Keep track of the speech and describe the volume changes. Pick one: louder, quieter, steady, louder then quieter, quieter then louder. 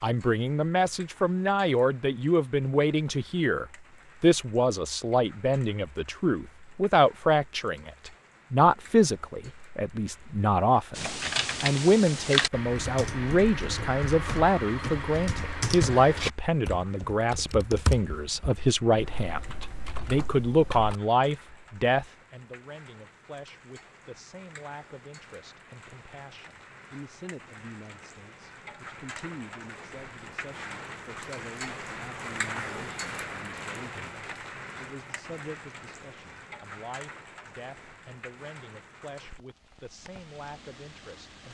quieter.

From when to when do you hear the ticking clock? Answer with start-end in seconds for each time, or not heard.
not heard.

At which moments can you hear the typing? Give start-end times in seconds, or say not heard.
10.9-20.9.